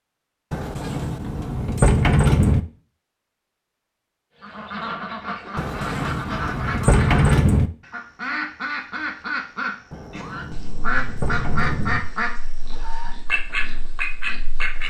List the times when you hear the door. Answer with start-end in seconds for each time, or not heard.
0.5-2.6, 5.5-7.7, 9.9-12.0.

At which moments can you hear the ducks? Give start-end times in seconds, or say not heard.
4.4-14.8.